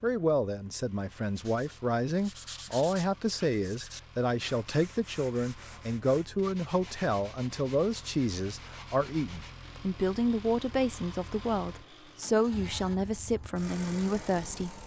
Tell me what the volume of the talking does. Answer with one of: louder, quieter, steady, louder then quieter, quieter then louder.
steady.